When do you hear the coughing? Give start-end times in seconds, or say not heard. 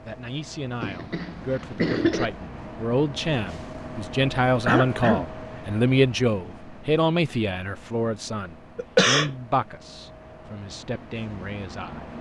0.8-2.3, 4.7-5.2, 8.8-9.3.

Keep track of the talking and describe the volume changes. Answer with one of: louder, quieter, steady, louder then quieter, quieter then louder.
louder then quieter.